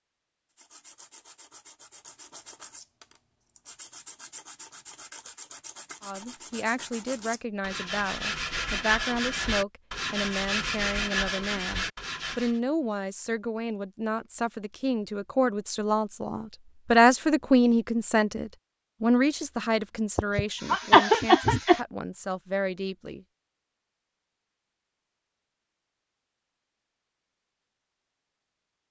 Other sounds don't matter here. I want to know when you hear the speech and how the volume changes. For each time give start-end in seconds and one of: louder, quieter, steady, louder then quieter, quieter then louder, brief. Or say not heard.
6.0-23.2 louder then quieter.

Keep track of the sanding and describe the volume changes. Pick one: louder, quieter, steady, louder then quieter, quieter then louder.
louder.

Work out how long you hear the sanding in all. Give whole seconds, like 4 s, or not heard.
12 s.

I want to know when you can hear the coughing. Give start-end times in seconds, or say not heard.
20.1-21.8.